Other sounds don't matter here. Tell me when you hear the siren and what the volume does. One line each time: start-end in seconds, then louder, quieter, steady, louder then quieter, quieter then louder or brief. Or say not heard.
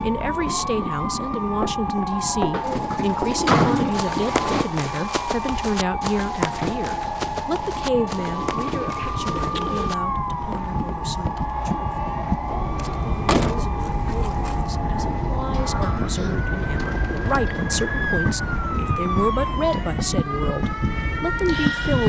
0.0-22.0 steady.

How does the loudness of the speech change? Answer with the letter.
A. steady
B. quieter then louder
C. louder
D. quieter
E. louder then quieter
B.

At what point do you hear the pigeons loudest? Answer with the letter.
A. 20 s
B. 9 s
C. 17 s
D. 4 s
D.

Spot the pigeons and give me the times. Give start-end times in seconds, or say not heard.
2.6-4.7, 8.2-9.9, 15.0-17.8.